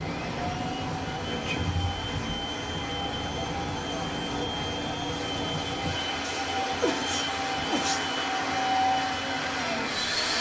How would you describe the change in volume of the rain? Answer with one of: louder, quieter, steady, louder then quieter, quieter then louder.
steady.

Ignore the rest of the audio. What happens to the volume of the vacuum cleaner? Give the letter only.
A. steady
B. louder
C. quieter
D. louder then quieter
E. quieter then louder
B.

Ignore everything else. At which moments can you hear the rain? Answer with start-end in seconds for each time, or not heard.
0.0-10.3.